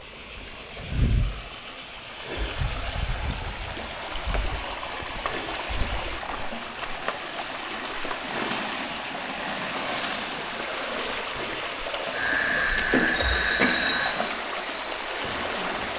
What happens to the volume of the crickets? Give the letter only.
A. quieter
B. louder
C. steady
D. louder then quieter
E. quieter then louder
C.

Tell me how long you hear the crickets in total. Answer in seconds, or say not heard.
16 s.